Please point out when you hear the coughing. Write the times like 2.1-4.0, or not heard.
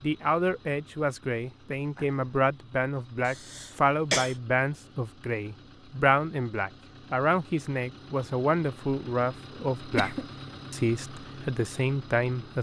3.2-4.3, 9.9-10.3.